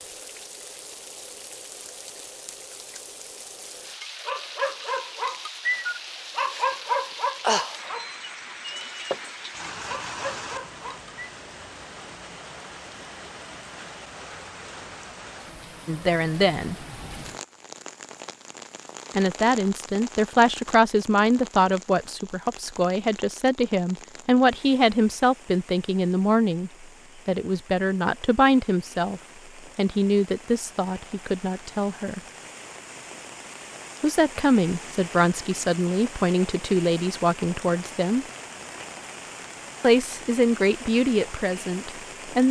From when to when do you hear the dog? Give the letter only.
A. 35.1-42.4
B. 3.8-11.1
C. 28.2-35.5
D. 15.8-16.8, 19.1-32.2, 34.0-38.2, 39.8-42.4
B.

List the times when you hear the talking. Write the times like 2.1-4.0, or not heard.
15.8-16.8, 19.1-32.2, 34.0-38.2, 39.8-42.4.